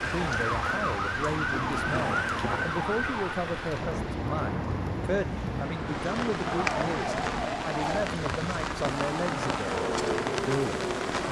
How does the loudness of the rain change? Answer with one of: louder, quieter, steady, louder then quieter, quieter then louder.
steady.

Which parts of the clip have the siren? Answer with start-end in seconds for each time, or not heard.
0.0-3.4, 6.4-8.1, 9.6-11.2.